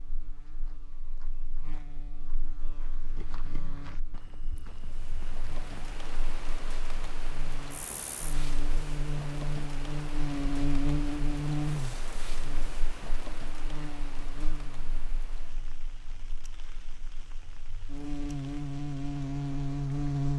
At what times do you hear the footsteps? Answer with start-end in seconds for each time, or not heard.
0.6-5.8.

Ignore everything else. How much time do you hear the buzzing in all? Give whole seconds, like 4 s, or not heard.
20 s.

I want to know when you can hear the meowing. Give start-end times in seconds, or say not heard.
not heard.